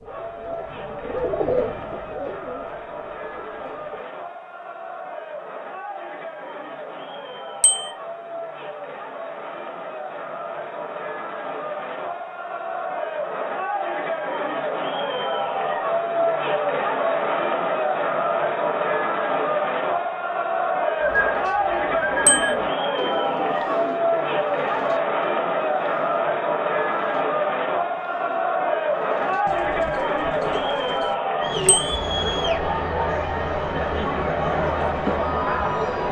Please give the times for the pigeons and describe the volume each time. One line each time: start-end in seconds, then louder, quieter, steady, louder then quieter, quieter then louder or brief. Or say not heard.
0.0-4.0 louder then quieter
21.0-31.8 quieter then louder.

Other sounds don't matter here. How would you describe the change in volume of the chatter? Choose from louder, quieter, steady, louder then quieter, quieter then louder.
louder.